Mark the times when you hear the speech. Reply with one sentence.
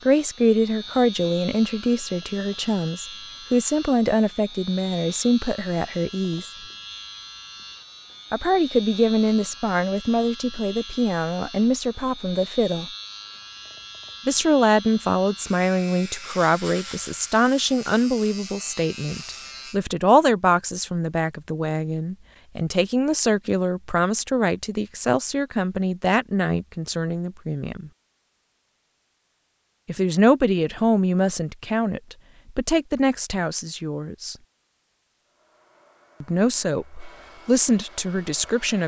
The speech can be heard from 0.1 to 6.5 s, from 8.3 to 12.9 s, from 14.2 to 27.9 s, from 29.9 to 34.4 s and from 36.2 to 38.8 s.